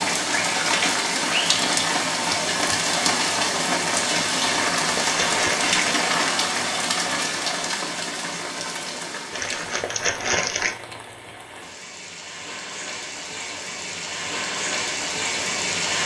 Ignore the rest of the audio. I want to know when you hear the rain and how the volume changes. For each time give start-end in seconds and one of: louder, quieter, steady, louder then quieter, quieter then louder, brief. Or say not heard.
0.0-16.0 quieter then louder.